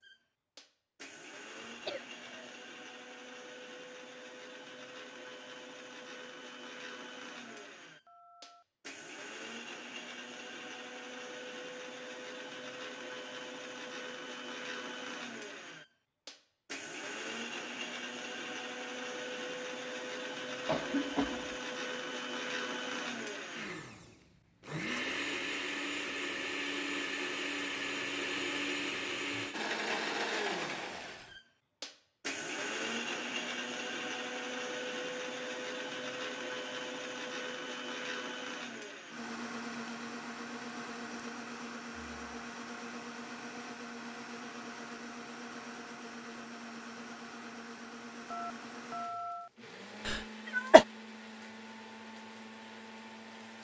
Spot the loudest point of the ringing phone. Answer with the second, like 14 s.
49 s.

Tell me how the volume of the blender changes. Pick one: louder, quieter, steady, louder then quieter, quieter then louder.
louder then quieter.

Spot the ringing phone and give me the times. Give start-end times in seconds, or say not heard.
7.5-8.7, 48.3-49.5.